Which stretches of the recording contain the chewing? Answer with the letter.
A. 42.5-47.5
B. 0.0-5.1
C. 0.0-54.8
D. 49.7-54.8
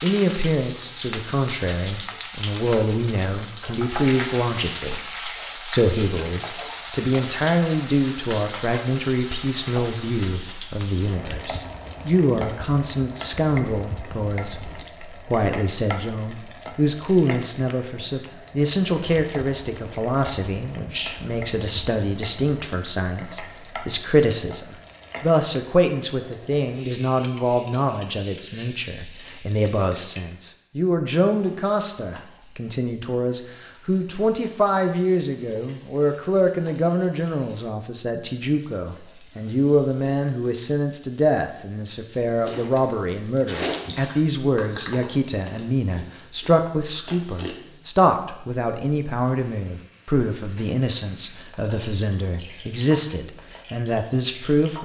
A.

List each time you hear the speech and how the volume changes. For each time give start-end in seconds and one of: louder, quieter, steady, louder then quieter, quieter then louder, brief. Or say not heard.
0.0-54.8 steady.